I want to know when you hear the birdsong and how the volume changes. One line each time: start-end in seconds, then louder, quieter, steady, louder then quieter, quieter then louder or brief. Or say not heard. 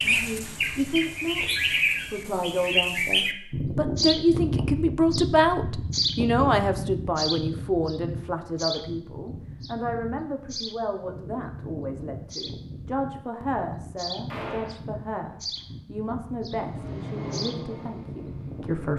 0.0-18.9 quieter.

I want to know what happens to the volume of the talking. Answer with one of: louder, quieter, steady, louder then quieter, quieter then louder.
louder then quieter.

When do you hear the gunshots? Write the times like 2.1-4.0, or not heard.
14.2-14.8.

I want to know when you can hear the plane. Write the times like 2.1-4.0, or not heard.
16.5-18.8.